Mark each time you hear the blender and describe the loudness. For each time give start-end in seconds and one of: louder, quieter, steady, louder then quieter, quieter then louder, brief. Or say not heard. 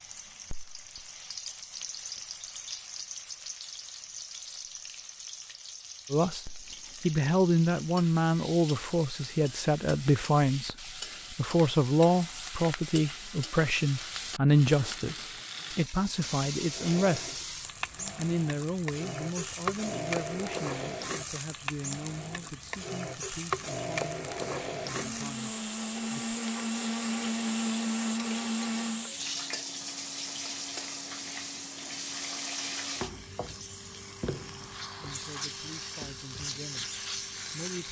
16.6-29.1 louder.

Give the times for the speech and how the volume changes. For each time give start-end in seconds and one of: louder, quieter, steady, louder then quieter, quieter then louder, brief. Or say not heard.
6.1-17.3 quieter
18.1-26.4 quieter
35.0-37.8 brief.